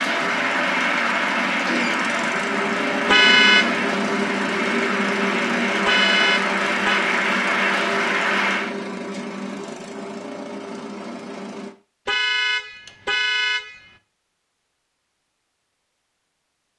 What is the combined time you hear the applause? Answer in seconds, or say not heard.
9 s.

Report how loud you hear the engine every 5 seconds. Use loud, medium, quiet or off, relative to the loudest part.
loud, loud, medium, off.